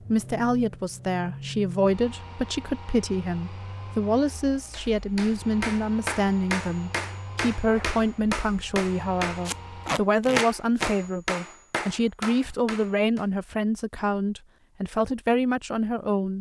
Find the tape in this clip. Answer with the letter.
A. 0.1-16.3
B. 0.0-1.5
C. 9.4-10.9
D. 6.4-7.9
C.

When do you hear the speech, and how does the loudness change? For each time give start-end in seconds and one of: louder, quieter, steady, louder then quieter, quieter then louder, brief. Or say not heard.
0.1-16.3 steady.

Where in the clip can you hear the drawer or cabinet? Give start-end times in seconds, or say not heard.
not heard.